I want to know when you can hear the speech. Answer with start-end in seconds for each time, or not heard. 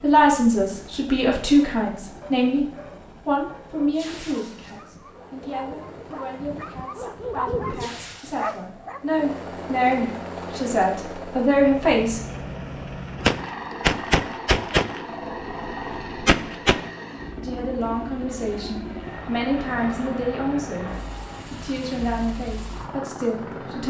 0.0-2.6, 3.2-12.2, 17.4-20.9, 21.5-23.8.